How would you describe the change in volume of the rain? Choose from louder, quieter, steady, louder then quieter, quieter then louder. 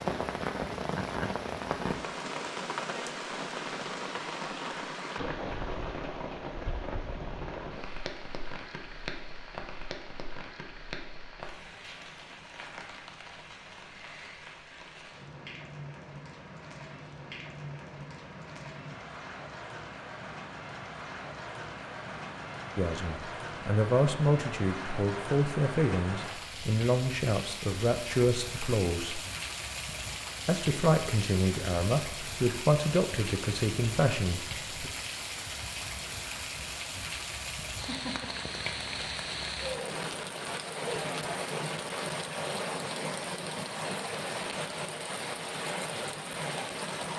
quieter then louder.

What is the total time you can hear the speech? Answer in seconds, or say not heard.
11 s.